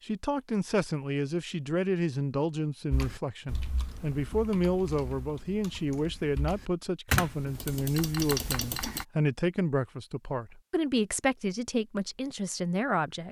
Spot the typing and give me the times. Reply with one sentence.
You can hear the typing from 2.9 to 9.1 s.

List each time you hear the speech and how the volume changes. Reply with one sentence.
The speech can be heard from 0.0 to 13.2 s, at a steady volume.